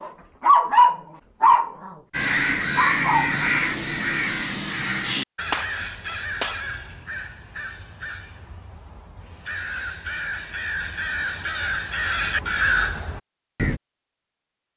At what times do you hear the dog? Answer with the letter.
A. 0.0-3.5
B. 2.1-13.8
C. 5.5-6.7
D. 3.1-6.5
A.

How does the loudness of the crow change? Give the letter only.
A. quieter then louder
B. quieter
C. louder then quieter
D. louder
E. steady
A.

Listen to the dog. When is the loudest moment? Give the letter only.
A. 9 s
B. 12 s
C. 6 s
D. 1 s
D.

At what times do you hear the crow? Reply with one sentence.
You can hear the crow from 2.1 to 13.8 s.